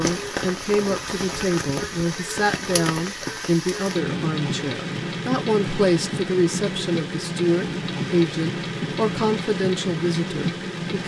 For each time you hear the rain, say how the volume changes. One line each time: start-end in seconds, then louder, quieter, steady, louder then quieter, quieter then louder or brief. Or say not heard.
0.0-11.0 steady.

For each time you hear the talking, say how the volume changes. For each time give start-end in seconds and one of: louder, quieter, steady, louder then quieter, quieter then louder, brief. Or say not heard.
0.0-11.0 steady.